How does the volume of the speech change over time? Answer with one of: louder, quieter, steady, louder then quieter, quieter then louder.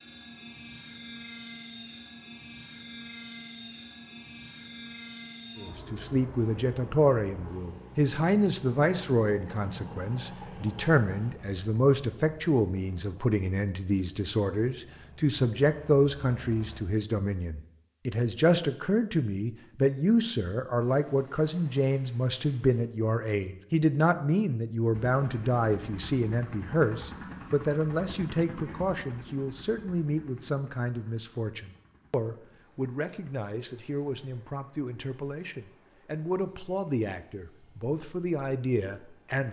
quieter.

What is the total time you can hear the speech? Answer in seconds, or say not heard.
34 s.